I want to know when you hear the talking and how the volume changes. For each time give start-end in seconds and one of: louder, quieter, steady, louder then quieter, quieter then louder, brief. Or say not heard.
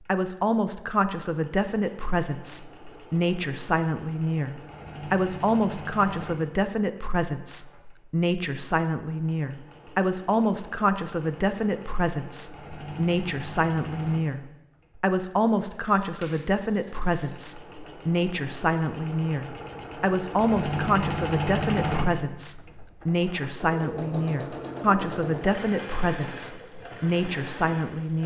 0.1-28.2 steady.